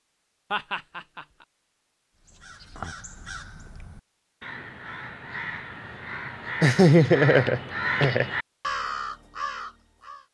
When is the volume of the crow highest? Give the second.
8 s.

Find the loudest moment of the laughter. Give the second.
7 s.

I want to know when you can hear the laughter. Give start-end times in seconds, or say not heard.
0.5-1.2, 6.6-8.3.